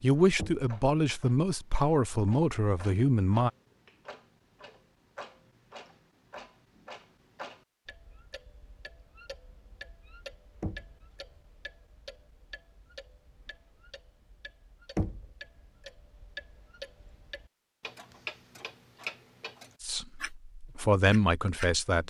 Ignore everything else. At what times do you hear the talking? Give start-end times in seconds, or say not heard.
0.0-3.5, 19.8-22.0.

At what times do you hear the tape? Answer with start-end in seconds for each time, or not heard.
not heard.